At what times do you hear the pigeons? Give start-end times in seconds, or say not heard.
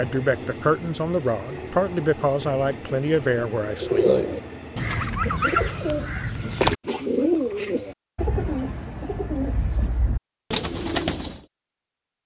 3.8-11.4.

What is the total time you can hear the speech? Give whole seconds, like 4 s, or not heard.
4 s.